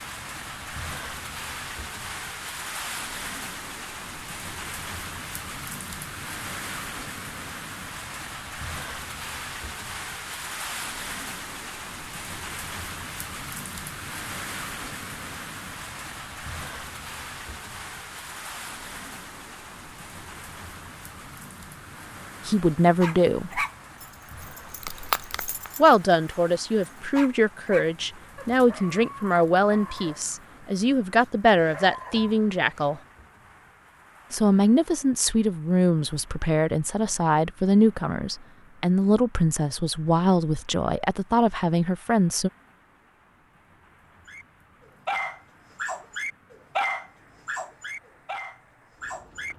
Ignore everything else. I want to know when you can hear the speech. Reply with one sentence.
The speech can be heard from 22.4 to 23.6 s, from 25.8 to 33.0 s and from 34.3 to 42.5 s.